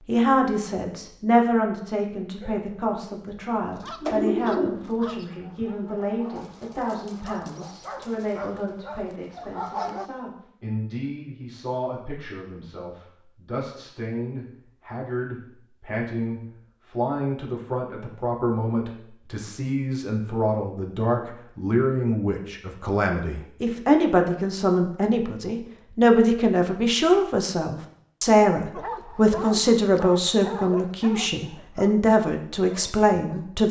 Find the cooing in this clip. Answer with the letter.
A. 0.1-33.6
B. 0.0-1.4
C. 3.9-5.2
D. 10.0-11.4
C.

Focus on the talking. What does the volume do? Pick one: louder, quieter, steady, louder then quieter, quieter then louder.
quieter then louder.